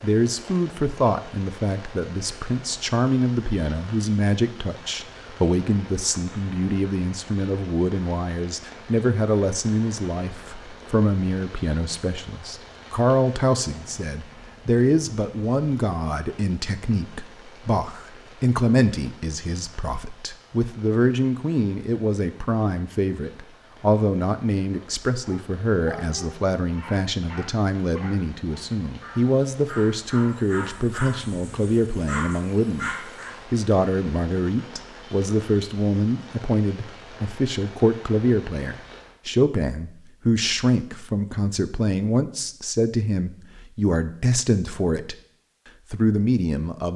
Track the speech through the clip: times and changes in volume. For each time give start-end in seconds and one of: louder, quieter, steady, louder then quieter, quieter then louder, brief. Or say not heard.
0.0-45.1 steady
45.9-46.9 brief.